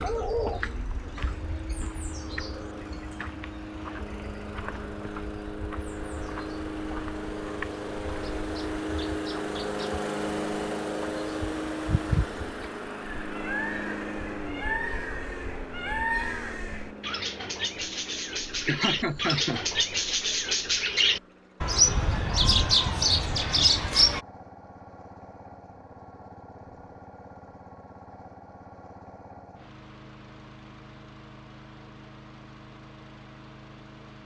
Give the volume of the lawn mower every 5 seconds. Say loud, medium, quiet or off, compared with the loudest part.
medium, loud, loud, medium, quiet, quiet, quiet.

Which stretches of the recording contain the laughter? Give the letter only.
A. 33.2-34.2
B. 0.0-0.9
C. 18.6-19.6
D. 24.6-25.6
C.